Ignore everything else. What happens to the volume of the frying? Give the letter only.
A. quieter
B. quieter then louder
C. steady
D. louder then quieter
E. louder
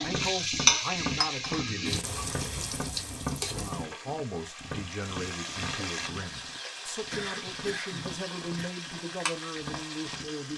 A.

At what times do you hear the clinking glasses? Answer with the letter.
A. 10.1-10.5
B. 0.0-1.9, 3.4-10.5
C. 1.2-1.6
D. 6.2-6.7
C.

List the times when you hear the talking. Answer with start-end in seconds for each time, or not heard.
0.0-1.9, 3.4-10.5.